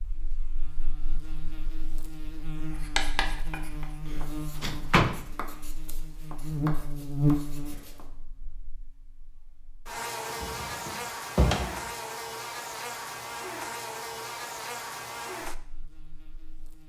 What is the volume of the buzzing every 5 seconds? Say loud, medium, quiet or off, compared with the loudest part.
medium, loud, loud, medium.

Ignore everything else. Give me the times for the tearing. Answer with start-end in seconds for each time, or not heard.
not heard.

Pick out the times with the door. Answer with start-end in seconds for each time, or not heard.
4.6-5.2, 10.2-11.9.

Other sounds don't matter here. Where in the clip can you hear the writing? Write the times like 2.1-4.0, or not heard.
2.7-8.1.